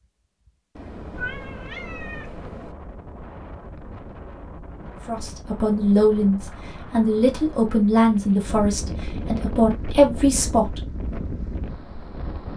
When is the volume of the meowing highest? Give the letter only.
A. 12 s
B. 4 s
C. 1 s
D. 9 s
C.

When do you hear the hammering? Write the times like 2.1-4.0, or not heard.
not heard.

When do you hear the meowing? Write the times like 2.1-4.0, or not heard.
0.8-2.8.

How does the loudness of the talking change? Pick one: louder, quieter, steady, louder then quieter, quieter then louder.
quieter then louder.